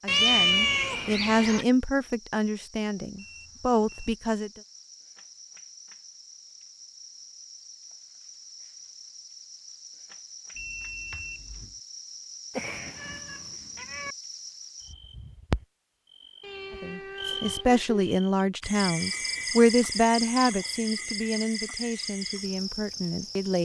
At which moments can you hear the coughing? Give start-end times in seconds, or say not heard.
not heard.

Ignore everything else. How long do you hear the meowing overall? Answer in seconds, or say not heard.
5 s.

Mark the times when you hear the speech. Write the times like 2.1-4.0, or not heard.
0.0-4.5, 16.8-23.5.